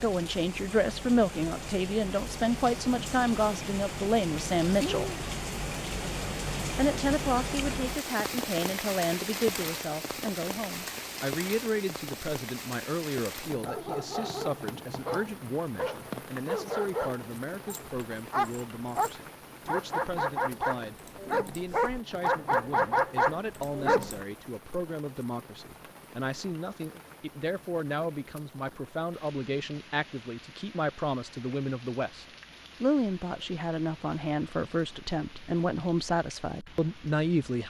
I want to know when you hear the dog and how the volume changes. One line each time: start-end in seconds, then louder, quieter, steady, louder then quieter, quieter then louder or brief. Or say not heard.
13.6-24.2 louder.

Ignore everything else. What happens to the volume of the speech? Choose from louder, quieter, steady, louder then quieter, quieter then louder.
quieter then louder.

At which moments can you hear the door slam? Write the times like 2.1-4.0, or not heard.
not heard.